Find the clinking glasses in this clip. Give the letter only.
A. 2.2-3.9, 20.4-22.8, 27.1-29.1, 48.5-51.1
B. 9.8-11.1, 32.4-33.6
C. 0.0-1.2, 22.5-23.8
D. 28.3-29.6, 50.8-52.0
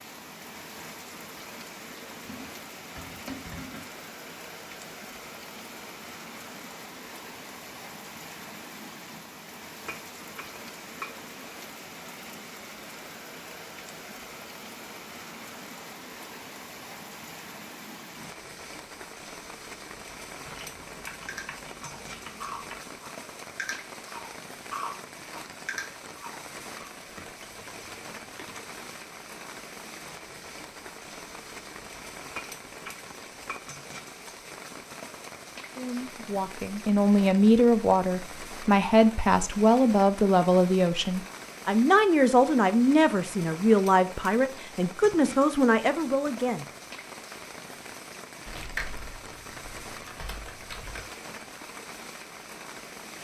B.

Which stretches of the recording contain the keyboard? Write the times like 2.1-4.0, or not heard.
2.2-3.9, 20.4-22.8, 27.1-29.1, 48.5-51.1.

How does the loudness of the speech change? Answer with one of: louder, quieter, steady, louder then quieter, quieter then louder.
steady.